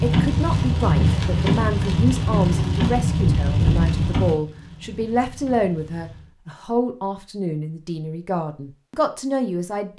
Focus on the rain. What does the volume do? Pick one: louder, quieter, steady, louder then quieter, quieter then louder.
quieter.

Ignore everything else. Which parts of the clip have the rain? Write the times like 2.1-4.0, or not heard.
0.0-6.3.